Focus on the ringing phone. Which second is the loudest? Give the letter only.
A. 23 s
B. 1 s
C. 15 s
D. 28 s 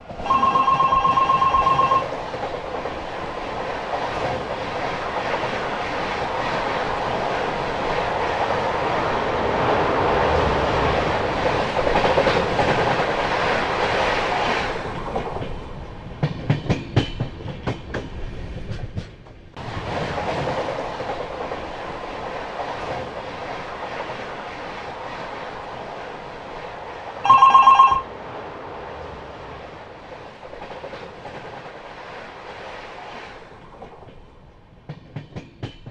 D.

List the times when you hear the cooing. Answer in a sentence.
The cooing can't be heard in this clip.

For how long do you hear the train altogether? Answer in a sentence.
The train can be heard for 36 seconds in total.